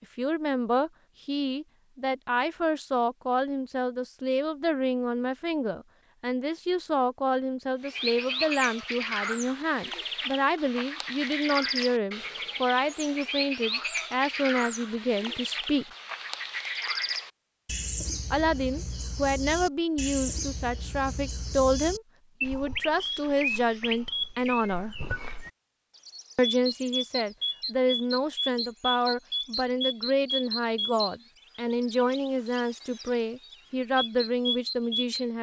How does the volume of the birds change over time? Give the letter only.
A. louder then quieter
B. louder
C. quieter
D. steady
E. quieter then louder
D.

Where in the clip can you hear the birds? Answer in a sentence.
You can hear the birds from 7.8 to 35.2 s.